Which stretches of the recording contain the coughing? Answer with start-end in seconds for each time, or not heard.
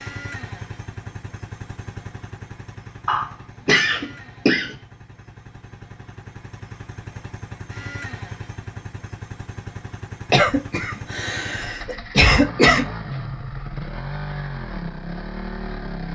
3.0-4.8, 10.3-12.8.